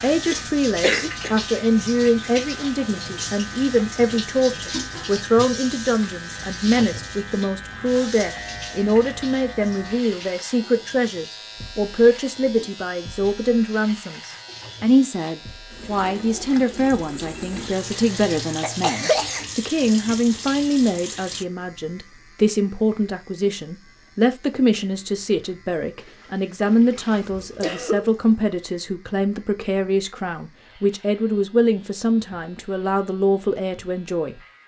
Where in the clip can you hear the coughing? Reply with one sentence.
You can hear the coughing from 0.1 to 1.4 s, from 17.9 to 19.4 s and from 27.4 to 28.1 s.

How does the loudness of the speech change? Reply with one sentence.
The loudness of the speech stays about the same.